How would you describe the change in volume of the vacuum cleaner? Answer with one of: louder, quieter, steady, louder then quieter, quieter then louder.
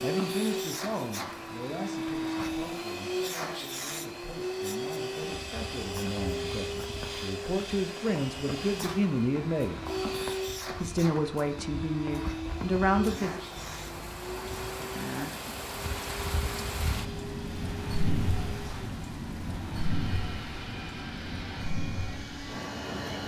quieter.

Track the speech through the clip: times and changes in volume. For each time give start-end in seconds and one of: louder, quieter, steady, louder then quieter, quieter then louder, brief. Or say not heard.
0.0-9.8 quieter then louder
10.7-13.4 brief.